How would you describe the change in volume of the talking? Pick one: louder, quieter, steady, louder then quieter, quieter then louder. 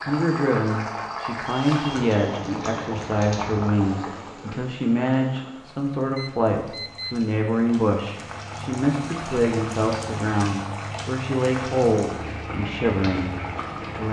steady.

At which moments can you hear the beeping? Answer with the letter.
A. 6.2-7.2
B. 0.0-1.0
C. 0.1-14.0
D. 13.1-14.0
A.